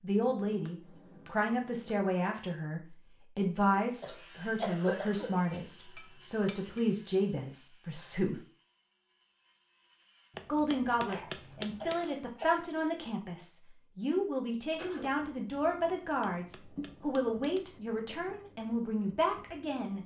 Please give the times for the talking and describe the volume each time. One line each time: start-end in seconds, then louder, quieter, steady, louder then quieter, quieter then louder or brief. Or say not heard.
0.0-8.4 steady
10.4-20.0 steady.